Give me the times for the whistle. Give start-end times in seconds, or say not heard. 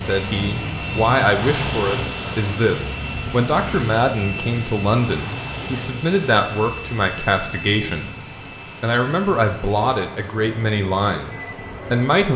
not heard.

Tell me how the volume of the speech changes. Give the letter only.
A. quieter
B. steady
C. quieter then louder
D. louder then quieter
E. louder
B.